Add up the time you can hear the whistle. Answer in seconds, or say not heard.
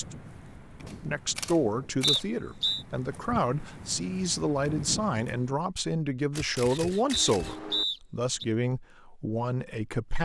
2 s.